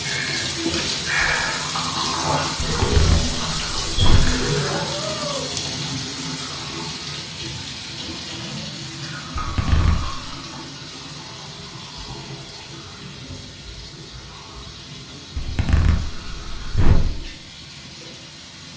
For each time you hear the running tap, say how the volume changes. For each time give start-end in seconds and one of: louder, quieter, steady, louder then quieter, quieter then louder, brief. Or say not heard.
0.0-18.7 quieter.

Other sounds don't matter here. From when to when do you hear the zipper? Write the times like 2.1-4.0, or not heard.
2.6-4.4, 9.3-10.2, 15.3-17.1.